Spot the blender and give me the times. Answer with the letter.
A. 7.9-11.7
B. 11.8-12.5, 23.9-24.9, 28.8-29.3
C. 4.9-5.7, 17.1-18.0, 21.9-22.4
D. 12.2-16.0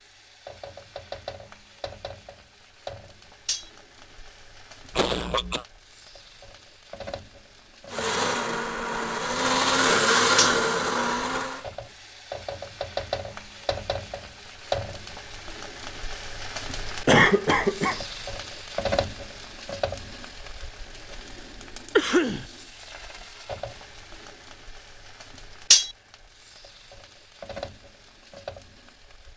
A.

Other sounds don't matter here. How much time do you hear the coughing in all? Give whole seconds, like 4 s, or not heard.
2 s.